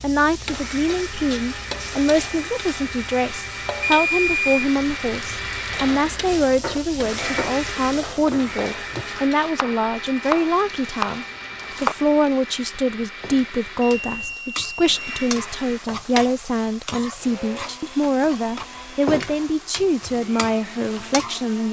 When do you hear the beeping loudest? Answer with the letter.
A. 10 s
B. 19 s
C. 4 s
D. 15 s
C.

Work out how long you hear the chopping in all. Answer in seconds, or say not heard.
5 s.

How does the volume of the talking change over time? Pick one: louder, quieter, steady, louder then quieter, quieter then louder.
steady.